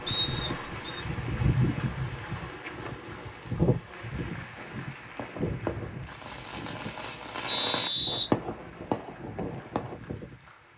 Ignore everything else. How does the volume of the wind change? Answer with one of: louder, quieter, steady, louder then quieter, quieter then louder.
quieter.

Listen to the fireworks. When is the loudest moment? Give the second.
8 s.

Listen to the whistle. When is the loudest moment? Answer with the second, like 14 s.
8 s.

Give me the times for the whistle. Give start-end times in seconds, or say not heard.
0.1-1.0, 7.5-8.2.